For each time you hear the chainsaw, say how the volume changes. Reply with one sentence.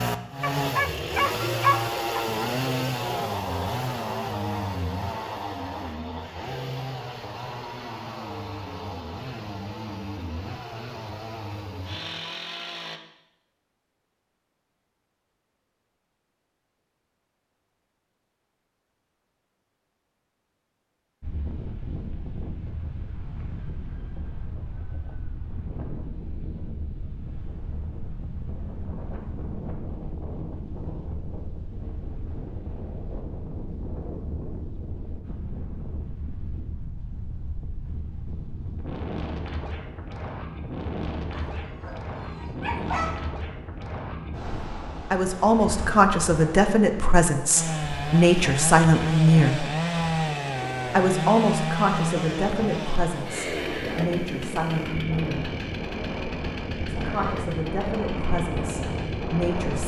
You can hear the chainsaw from 0.0 to 13.0 s, getting quieter; and from 47.5 to 59.8 s, getting quieter.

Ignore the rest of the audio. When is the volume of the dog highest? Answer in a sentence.
The volume of the dog peaks at 2 seconds.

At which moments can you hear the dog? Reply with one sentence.
You can hear the dog from 0.4 to 2.2 s and from 41.3 to 43.4 s.